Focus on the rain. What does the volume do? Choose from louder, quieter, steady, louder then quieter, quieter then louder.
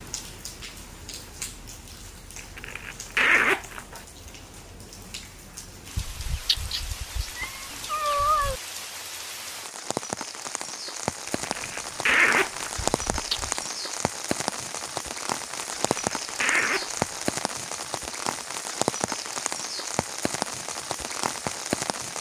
louder.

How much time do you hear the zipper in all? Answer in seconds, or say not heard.
5 s.